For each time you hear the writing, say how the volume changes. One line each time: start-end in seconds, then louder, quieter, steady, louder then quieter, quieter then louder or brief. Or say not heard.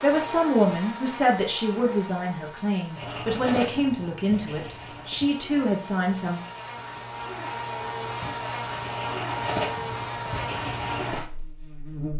3.0-11.2 quieter then louder.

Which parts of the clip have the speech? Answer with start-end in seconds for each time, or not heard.
0.0-6.4.